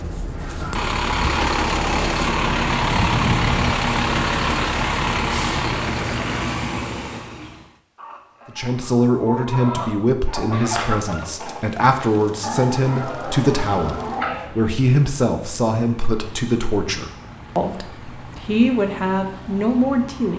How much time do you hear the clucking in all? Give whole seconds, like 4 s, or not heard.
7 s.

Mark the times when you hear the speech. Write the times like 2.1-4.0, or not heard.
8.4-20.3.